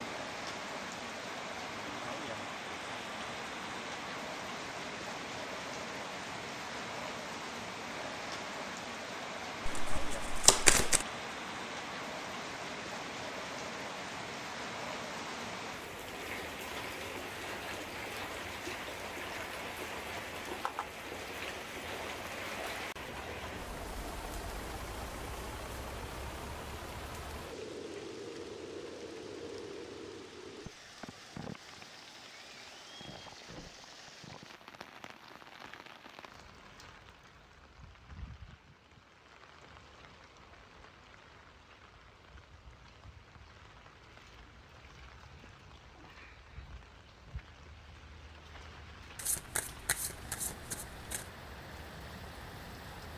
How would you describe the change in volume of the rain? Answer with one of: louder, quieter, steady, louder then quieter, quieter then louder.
quieter.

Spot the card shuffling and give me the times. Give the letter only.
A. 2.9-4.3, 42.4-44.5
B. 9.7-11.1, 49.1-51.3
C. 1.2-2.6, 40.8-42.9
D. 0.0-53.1
B.